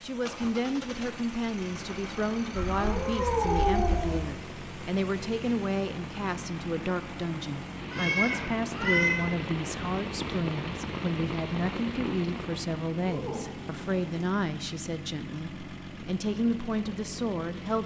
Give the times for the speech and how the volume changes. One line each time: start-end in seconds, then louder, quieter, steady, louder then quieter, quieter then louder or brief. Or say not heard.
0.0-17.8 steady.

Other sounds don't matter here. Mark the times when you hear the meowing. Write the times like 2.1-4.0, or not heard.
2.5-4.3, 7.9-9.2, 13.0-14.3.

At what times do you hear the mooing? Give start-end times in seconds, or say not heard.
not heard.